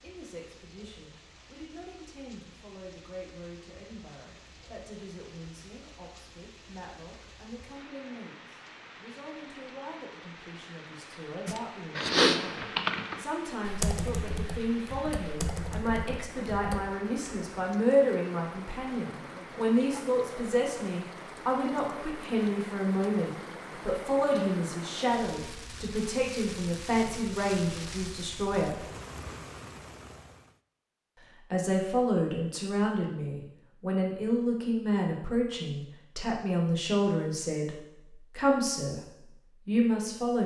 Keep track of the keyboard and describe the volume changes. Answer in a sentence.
The loudness of the keyboard goes down.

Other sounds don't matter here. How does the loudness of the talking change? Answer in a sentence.
The loudness of the talking goes up.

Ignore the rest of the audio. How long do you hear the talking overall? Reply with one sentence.
You can hear the talking for 38 seconds altogether.